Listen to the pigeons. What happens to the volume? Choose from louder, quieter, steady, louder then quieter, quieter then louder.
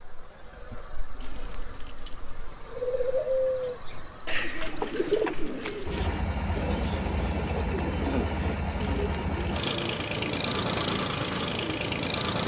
quieter.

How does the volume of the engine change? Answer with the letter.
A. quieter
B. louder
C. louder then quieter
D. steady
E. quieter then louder
B.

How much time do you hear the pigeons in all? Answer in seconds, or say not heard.
9 s.